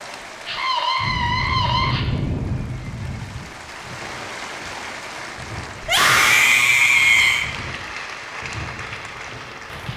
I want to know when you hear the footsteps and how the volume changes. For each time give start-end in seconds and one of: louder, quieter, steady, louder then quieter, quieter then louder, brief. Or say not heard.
not heard.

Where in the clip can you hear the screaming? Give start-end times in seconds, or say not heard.
0.5-2.0, 5.8-7.5.